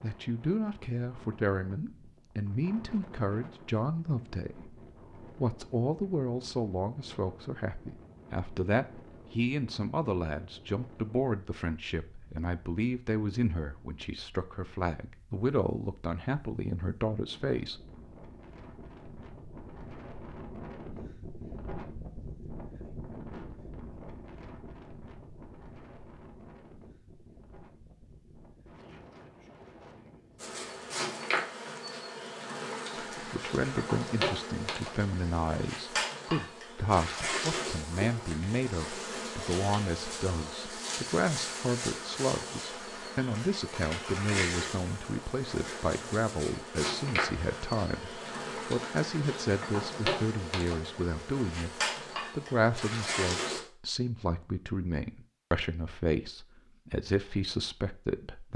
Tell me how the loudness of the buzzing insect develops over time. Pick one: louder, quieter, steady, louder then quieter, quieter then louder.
steady.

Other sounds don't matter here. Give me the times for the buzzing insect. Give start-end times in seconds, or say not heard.
30.4-53.6.